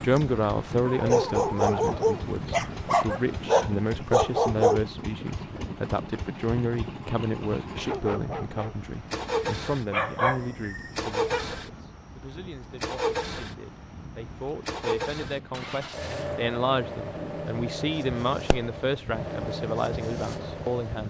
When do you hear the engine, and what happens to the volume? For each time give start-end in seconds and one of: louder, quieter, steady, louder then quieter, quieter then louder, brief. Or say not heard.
0.0-21.0 louder.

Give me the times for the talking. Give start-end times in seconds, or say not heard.
0.0-21.0.